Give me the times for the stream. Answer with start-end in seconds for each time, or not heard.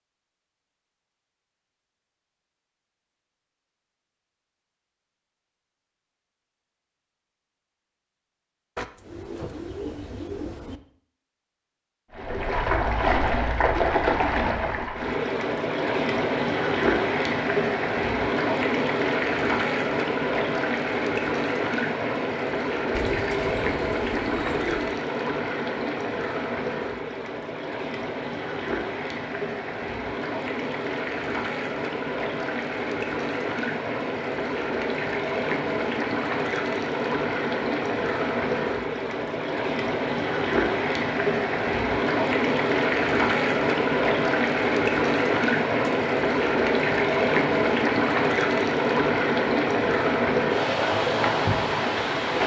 12.1-52.4.